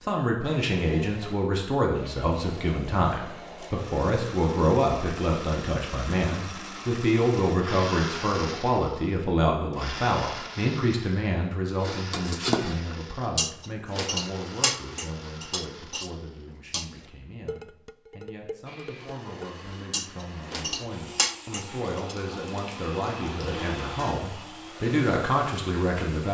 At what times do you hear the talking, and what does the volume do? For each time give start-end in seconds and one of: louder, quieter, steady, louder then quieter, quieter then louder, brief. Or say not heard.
0.0-26.3 quieter then louder.